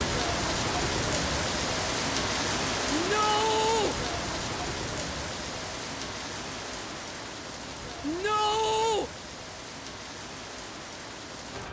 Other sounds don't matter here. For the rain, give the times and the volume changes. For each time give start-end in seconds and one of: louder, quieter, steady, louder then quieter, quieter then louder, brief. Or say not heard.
0.0-11.6 quieter.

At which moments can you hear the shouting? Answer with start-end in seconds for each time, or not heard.
2.9-4.0, 8.0-9.1.